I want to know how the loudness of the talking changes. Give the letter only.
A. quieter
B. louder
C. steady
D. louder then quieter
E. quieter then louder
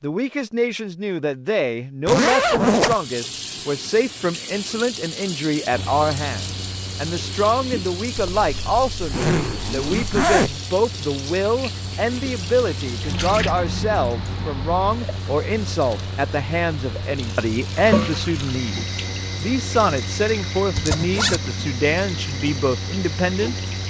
C.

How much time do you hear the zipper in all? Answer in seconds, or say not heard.
4 s.